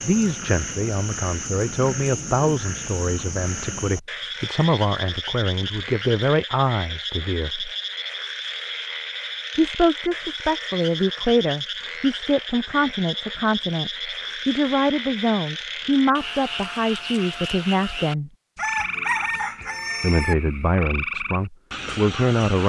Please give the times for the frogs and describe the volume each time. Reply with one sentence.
You can hear the frogs from 0.0 to 22.6 s, at a steady volume.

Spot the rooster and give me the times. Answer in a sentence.
The rooster can be heard from 18.6 to 20.4 s.